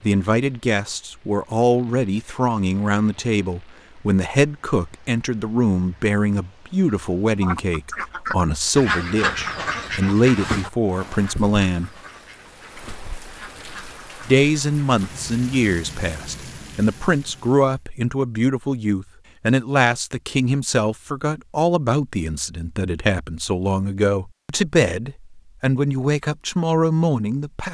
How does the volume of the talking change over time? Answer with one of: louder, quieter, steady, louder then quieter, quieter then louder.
steady.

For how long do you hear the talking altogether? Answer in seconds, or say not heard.
25 s.